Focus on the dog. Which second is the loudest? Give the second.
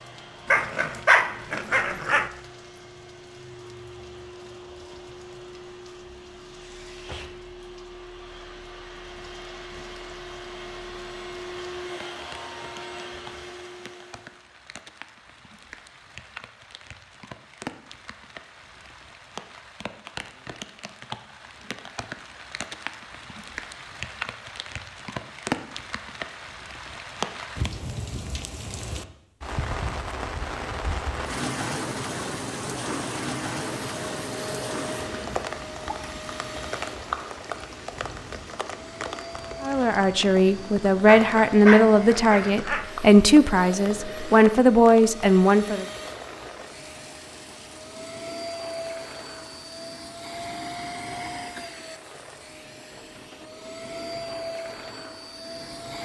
1 s.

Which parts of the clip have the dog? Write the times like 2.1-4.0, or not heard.
0.5-2.3, 41.0-42.9.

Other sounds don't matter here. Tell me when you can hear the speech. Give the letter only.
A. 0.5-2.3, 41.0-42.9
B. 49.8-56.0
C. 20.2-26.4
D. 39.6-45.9
D.